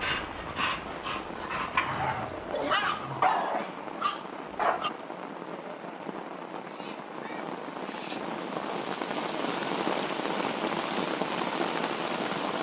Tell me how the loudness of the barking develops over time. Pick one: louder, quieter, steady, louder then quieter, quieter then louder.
louder then quieter.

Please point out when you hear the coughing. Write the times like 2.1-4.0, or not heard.
not heard.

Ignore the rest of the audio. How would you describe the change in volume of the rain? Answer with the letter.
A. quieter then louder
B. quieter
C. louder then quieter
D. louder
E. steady
D.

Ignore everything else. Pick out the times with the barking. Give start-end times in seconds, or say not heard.
0.0-4.9.